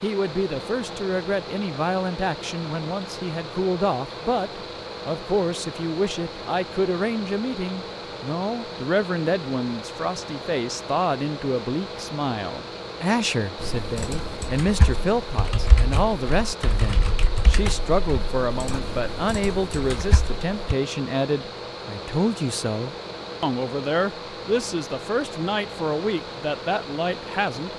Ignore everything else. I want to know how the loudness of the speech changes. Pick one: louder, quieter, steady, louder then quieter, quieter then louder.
steady.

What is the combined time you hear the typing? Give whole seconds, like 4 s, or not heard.
7 s.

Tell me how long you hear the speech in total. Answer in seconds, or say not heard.
28 s.